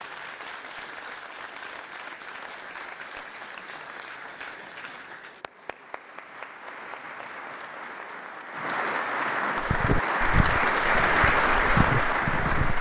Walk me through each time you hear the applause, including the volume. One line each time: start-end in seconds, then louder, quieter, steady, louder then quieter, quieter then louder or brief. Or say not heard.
0.0-12.7 louder.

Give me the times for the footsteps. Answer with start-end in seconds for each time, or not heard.
9.6-12.7.